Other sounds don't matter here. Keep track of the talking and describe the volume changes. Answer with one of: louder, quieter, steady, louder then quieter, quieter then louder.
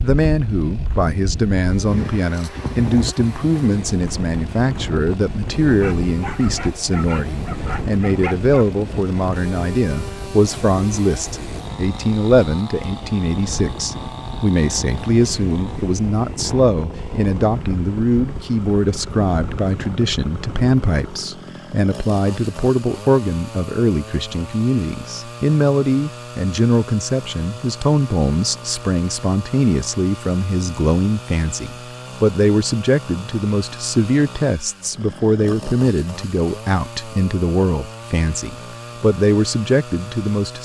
steady.